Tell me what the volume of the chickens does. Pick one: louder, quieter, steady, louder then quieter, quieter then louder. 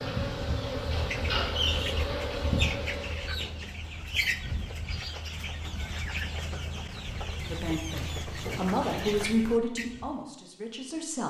steady.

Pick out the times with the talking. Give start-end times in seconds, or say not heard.
7.5-11.2.